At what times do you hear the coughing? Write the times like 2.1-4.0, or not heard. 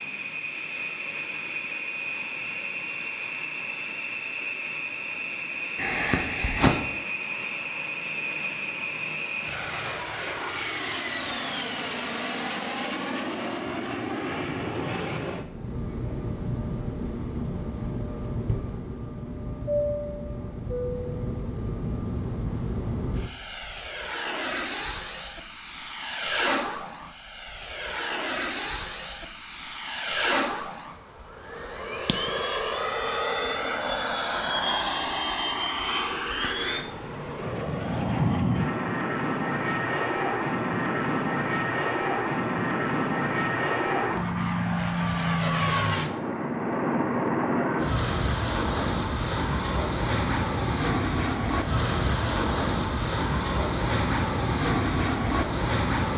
5.8-6.7.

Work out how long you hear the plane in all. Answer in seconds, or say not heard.
56 s.